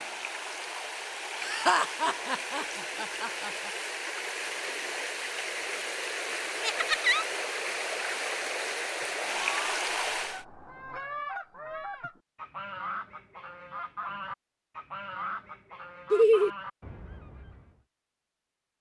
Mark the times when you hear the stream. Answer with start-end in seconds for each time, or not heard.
0.0-10.4.